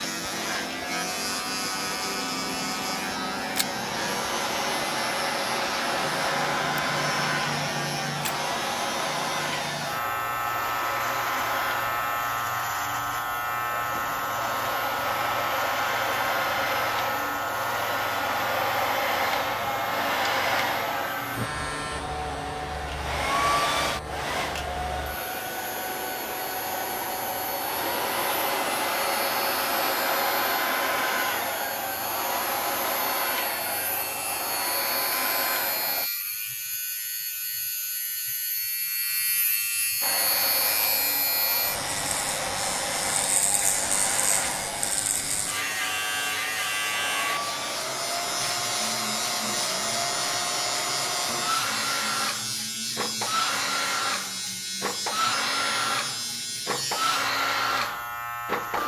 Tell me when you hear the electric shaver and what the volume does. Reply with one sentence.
You can hear the electric shaver from 0.0 to 58.8 s, getting quieter then louder.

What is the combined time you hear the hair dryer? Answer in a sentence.
You can hear the hair dryer for 55 seconds altogether.